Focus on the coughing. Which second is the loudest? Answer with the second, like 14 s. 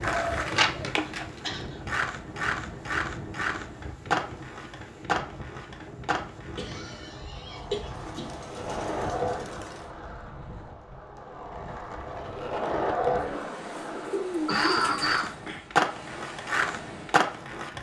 15 s.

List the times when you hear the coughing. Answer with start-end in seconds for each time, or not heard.
0.9-1.8, 6.5-8.2, 14.4-15.3.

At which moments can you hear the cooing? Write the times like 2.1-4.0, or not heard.
0.1-1.0, 7.5-9.8, 13.2-15.7.